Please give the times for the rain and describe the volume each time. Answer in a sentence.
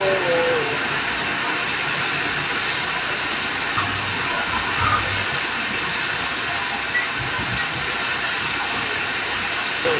The rain can be heard from 0.0 to 9.9 s, at a steady volume.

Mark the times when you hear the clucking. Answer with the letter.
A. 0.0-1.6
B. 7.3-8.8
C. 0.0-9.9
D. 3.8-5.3
D.